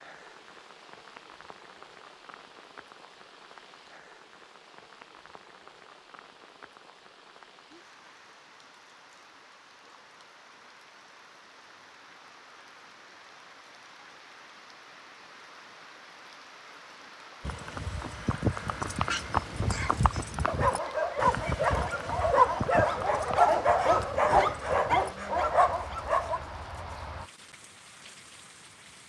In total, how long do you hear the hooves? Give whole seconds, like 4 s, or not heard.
10 s.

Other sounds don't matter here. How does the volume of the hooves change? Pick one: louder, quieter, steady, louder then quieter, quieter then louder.
quieter.